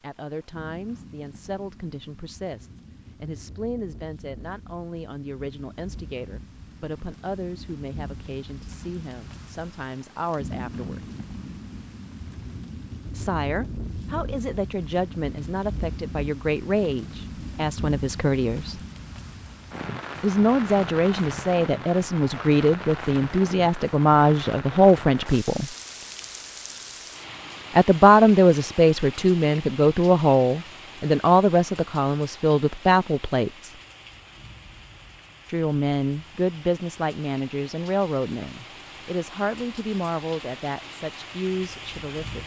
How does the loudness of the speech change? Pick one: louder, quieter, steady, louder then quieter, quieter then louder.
louder then quieter.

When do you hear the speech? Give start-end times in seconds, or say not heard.
0.0-11.1, 13.1-18.8, 20.2-25.7, 27.8-33.8, 35.5-42.4.